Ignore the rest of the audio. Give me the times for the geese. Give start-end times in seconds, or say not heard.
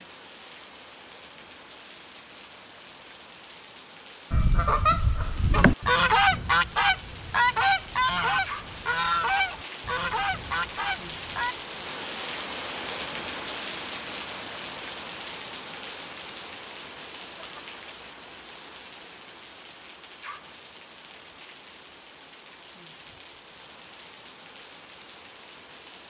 4.3-11.6.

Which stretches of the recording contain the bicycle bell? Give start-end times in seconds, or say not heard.
not heard.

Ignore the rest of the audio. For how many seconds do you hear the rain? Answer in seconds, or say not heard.
26 s.